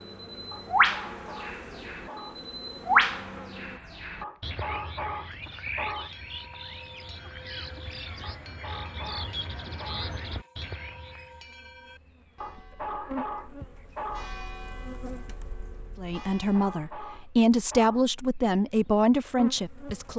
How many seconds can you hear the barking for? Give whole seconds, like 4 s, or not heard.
10 s.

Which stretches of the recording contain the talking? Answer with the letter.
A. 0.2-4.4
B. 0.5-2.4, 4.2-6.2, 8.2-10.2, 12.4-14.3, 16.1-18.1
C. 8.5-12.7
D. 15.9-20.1
D.